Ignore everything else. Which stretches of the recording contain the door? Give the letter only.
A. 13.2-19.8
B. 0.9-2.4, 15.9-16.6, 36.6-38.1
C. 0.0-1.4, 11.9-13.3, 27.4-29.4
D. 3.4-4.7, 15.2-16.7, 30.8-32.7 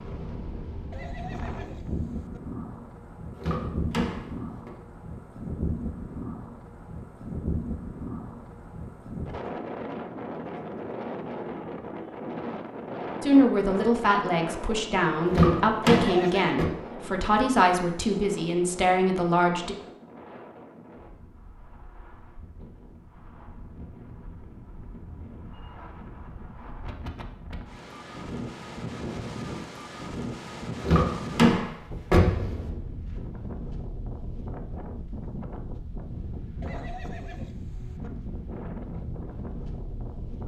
D.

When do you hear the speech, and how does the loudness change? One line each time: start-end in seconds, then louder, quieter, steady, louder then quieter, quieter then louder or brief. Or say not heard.
13.2-19.8 steady.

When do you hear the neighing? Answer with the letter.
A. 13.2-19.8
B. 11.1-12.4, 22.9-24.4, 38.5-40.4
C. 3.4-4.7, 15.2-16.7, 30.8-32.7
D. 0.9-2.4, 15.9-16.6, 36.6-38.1
D.